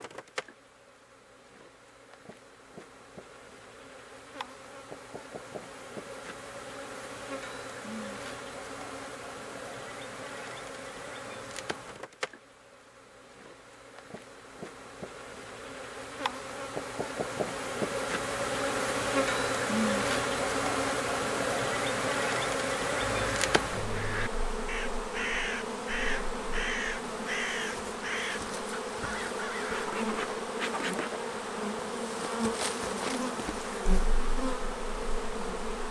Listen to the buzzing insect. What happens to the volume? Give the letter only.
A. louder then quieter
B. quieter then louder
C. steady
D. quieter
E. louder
E.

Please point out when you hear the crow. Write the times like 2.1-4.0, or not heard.
23.2-29.9.